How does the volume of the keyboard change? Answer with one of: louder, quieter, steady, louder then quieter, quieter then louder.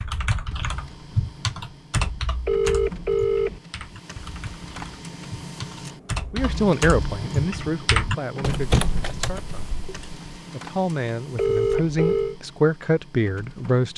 quieter then louder.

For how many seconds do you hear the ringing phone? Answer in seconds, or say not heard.
2 s.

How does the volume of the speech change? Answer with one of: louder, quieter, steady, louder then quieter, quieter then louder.
quieter then louder.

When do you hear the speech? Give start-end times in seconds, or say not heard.
6.3-9.7, 10.5-13.9.